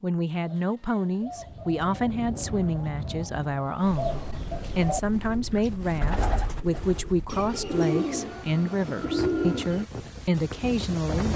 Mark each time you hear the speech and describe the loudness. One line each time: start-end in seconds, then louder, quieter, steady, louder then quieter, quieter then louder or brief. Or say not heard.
0.0-11.3 steady.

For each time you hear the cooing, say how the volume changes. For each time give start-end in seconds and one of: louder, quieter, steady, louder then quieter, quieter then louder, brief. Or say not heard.
0.3-9.8 louder.